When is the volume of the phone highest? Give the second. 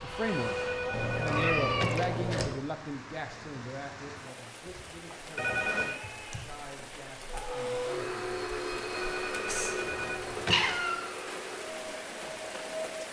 6 s.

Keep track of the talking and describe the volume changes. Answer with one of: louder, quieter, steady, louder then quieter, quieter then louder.
quieter.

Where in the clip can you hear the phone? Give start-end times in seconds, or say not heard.
0.2-2.2, 5.3-6.0, 8.9-10.8.